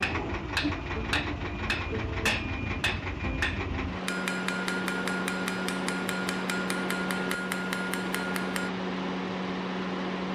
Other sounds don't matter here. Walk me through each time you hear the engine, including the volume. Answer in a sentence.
You can hear the engine from 0.0 to 10.3 s, at a steady volume.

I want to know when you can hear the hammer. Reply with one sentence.
The hammer can be heard from 0.0 to 8.7 s.